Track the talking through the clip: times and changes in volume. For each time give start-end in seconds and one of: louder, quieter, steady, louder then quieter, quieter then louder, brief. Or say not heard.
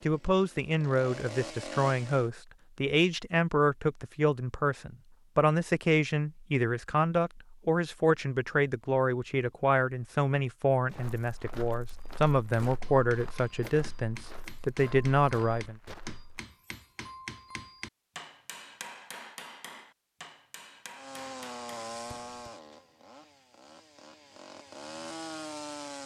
0.0-15.8 steady.